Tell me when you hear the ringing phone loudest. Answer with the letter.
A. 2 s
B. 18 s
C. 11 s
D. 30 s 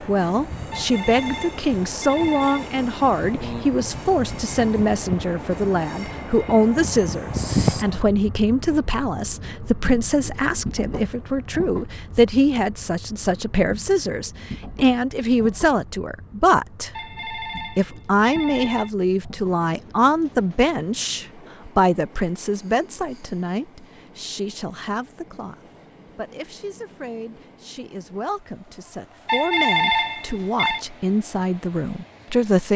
D.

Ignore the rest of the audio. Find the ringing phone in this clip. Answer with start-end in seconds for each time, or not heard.
0.7-2.7, 16.9-18.9, 29.2-30.8.